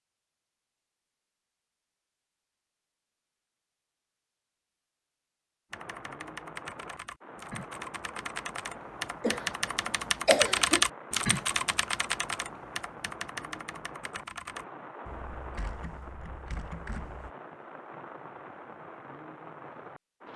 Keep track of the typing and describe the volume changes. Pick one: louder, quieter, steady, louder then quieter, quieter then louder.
louder then quieter.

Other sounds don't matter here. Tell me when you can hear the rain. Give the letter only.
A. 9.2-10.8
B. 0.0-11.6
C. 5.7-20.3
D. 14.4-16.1
C.